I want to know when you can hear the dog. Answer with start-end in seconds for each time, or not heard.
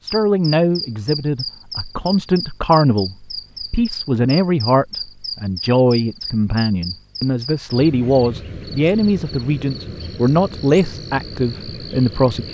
not heard.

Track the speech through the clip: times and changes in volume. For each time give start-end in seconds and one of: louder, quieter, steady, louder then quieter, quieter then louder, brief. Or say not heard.
0.0-12.4 steady.